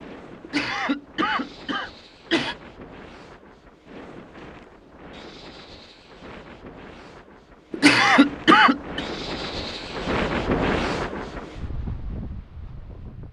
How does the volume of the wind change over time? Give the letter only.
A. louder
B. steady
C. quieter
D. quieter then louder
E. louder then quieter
A.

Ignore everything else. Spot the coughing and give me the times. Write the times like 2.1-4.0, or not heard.
0.4-2.5, 7.7-9.0.